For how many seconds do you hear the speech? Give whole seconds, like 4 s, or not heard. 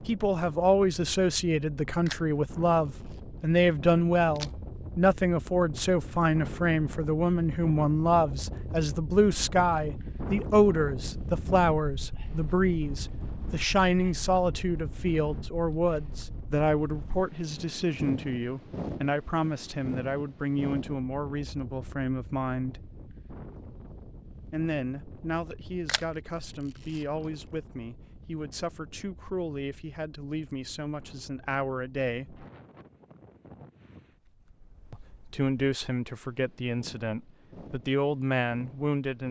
35 s.